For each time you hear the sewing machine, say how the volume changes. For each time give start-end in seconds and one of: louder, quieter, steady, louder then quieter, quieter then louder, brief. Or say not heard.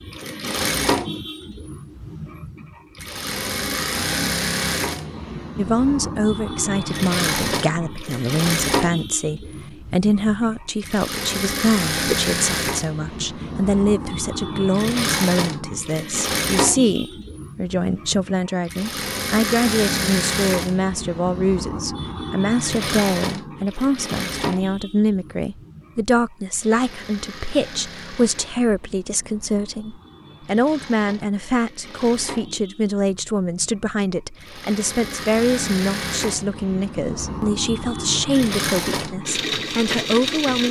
0.0-40.6 quieter then louder.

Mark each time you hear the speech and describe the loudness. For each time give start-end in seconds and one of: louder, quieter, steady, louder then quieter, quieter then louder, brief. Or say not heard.
5.5-40.6 steady.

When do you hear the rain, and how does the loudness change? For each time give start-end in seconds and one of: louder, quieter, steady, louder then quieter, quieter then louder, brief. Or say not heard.
not heard.